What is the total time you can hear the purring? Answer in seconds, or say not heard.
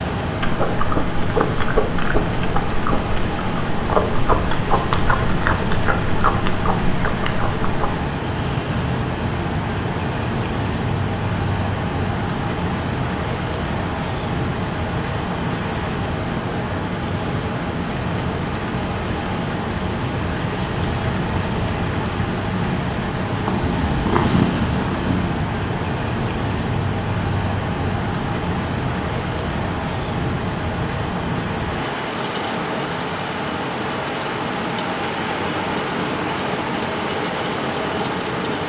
2 s.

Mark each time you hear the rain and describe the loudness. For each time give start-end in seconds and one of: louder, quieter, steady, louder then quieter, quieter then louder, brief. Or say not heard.
0.0-38.6 steady.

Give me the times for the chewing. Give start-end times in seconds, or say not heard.
0.4-8.0.